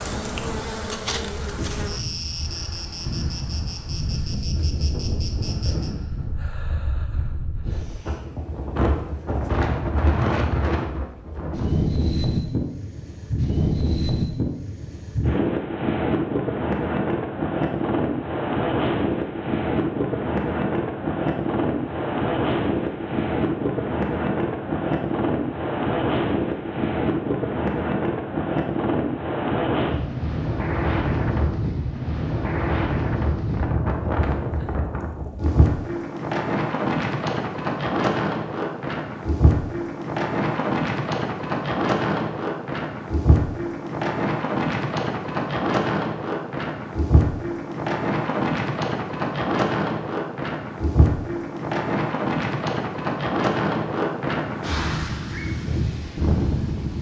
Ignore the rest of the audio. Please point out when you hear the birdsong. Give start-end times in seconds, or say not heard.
not heard.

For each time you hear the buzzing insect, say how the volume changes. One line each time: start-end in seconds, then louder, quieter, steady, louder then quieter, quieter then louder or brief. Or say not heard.
0.0-5.9 quieter.